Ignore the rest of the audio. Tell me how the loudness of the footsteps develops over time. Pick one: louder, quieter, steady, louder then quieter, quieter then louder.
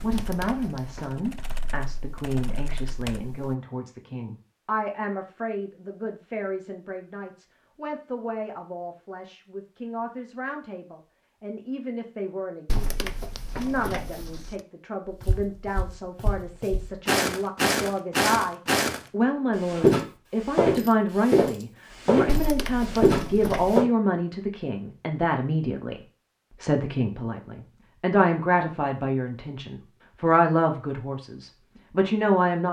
louder.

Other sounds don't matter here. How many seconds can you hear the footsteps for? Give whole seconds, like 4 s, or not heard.
8 s.